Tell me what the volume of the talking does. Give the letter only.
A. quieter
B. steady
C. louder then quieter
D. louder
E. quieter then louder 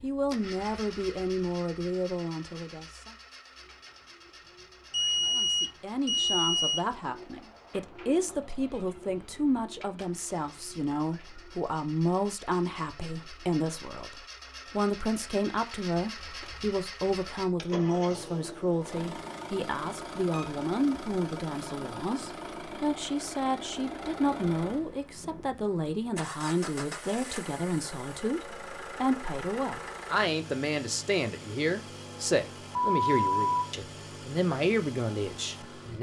B.